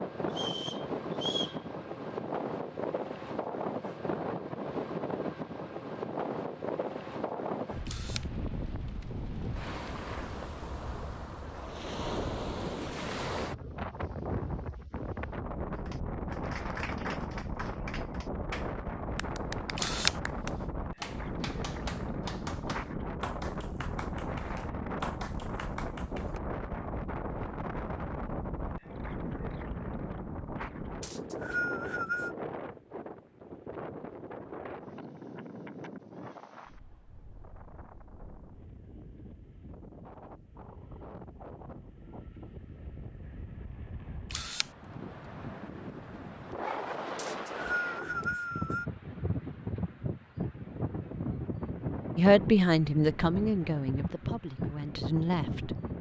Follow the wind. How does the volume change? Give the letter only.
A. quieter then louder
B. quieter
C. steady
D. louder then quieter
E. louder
A.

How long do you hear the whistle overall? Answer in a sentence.
The whistle can be heard for 4 seconds in total.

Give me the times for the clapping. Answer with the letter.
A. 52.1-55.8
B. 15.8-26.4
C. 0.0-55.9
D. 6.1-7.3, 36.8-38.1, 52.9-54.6
B.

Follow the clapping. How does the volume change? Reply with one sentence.
The loudness of the clapping stays about the same.